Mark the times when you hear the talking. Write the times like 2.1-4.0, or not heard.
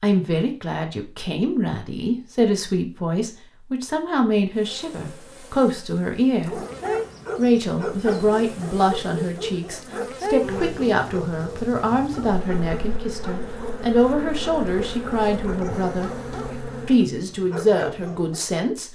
0.0-6.6, 7.3-16.1, 16.9-18.9.